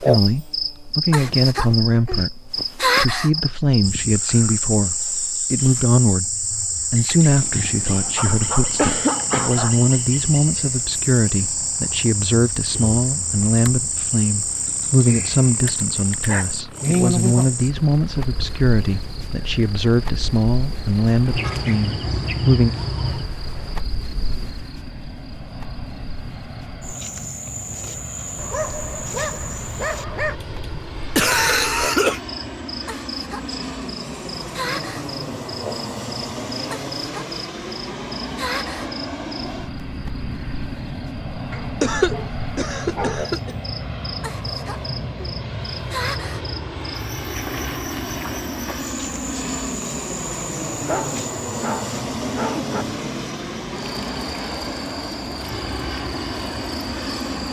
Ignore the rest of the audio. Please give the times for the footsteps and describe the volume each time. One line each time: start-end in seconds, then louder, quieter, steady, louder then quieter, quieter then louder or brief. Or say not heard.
not heard.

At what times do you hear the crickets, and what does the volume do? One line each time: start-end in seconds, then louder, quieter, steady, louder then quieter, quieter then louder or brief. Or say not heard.
0.0-57.4 quieter.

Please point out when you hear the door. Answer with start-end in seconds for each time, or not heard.
not heard.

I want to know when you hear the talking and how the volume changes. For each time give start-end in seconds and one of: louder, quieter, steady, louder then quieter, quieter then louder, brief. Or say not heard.
0.0-22.7 steady.